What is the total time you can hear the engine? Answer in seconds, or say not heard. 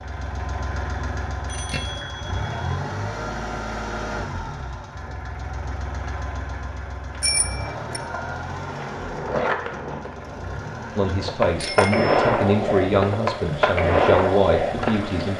15 s.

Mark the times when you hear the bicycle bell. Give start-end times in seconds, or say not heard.
1.4-2.8, 7.2-8.0, 11.6-12.1.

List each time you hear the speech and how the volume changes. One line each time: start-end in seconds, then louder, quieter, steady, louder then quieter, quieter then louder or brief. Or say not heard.
10.9-15.3 steady.